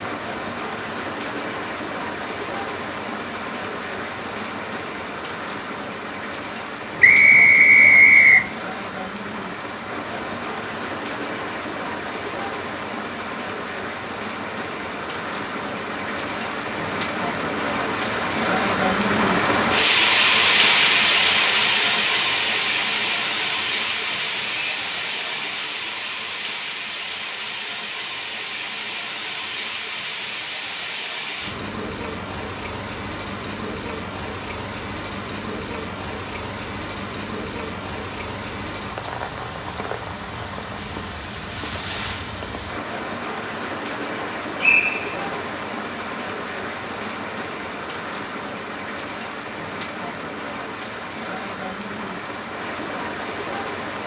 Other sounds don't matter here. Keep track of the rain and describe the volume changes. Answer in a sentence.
The loudness of the rain goes up, then down.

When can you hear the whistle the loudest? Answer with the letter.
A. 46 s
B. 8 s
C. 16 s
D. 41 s
B.